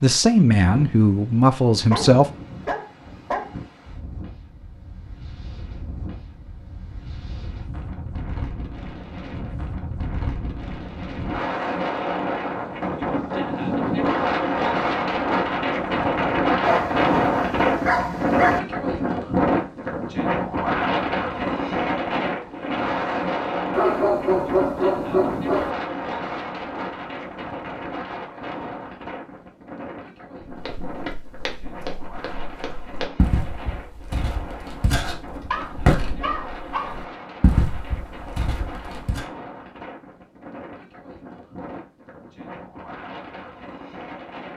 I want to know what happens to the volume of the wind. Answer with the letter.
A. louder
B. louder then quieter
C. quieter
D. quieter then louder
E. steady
B.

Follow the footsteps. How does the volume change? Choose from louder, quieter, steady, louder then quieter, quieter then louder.
louder.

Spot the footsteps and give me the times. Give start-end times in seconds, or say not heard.
30.4-39.2.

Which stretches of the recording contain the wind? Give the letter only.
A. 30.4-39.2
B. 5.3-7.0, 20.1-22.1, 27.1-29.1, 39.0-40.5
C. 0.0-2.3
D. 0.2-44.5
D.